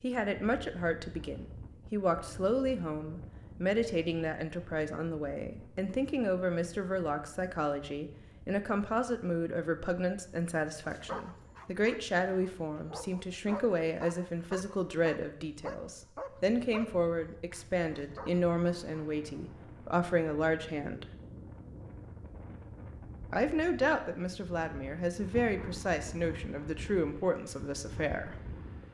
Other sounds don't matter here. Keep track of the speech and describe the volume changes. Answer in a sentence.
The loudness of the speech stays about the same.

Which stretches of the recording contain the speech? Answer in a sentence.
The speech can be heard from 0.0 to 21.1 s and from 23.3 to 28.4 s.